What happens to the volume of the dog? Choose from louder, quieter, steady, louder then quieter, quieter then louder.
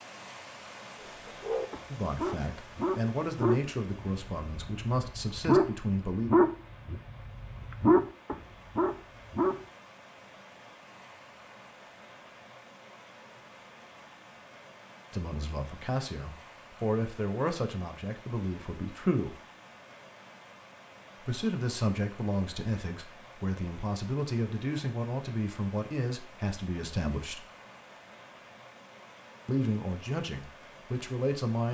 louder.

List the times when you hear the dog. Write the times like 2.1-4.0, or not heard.
1.0-9.6.